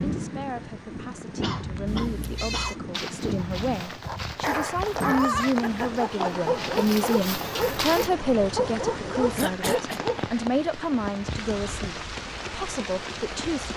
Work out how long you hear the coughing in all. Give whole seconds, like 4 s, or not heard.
2 s.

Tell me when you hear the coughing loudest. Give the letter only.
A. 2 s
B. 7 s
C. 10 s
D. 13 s
C.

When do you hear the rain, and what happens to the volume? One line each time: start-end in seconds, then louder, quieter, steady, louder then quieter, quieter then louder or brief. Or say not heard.
0.0-13.7 steady.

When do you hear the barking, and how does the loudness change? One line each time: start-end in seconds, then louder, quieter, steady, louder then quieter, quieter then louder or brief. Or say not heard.
3.8-10.2 steady.